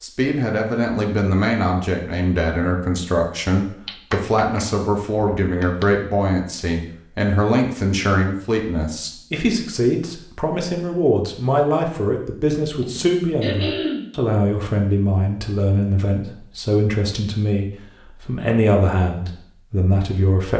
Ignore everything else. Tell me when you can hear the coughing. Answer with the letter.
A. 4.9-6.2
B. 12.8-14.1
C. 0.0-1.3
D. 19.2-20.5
B.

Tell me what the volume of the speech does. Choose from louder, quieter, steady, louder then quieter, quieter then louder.
steady.